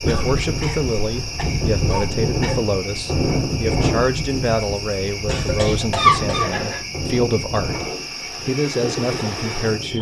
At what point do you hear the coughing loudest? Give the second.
6 s.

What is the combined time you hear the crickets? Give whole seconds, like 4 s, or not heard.
10 s.